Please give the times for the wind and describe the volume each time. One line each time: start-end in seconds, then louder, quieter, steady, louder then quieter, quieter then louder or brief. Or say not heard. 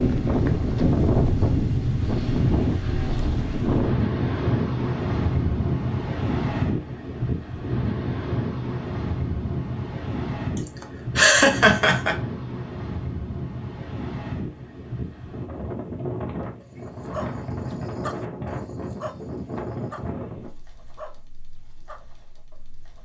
0.0-23.0 quieter.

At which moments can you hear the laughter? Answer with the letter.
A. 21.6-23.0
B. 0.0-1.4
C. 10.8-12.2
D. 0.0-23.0
C.